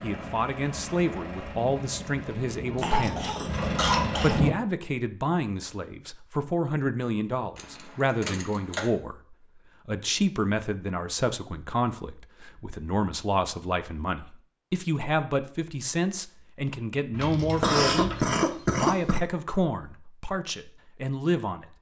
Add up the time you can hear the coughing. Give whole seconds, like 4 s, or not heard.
3 s.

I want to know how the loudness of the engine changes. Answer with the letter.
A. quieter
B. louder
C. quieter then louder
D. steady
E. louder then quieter
B.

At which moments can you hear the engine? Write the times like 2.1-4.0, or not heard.
0.0-4.5.